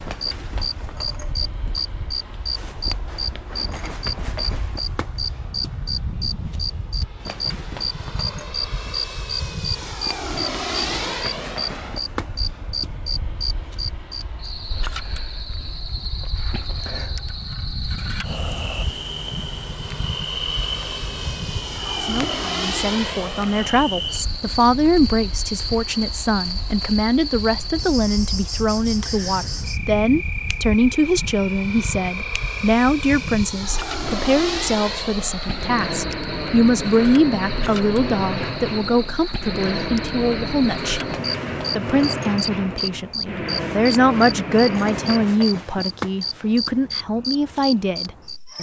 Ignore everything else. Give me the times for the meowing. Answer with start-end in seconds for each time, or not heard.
not heard.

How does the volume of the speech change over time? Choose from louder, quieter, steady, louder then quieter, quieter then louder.
steady.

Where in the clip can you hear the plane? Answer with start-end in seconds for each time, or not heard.
0.0-45.5.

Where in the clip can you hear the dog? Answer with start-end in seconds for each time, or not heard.
not heard.